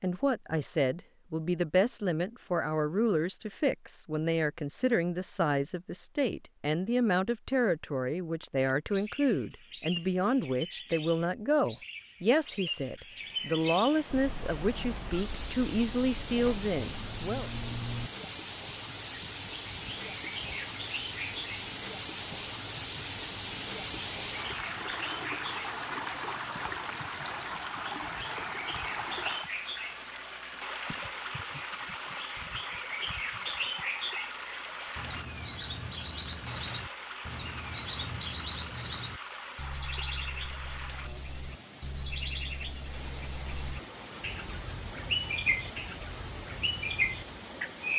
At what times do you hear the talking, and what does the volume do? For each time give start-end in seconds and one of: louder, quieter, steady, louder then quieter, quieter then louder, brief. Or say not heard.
0.0-17.5 steady.